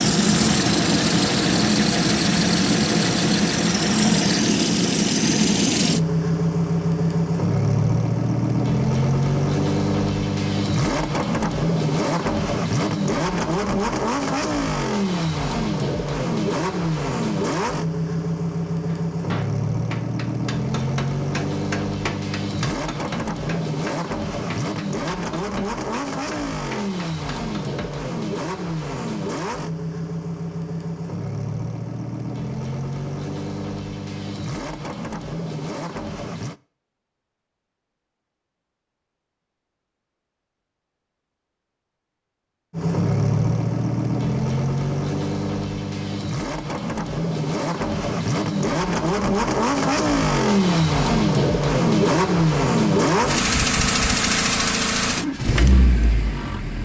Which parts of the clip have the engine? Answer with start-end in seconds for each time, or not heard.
0.0-36.5, 42.7-56.7.